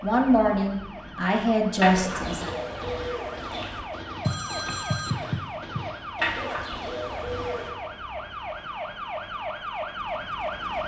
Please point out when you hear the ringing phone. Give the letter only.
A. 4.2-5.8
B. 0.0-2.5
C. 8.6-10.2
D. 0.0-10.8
A.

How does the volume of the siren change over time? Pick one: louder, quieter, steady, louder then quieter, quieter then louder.
louder.